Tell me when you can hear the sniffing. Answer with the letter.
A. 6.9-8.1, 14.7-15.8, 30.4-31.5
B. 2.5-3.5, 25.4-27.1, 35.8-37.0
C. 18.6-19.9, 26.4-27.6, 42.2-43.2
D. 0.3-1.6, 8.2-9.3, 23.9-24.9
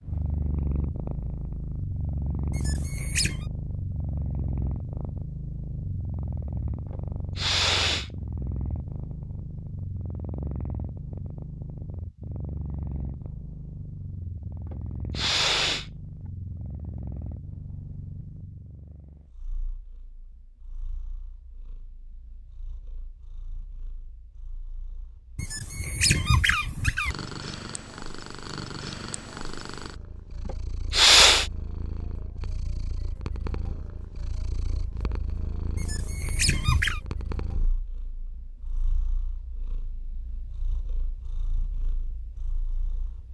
A.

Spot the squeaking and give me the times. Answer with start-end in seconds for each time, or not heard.
2.5-3.5, 25.4-27.1, 35.8-37.0.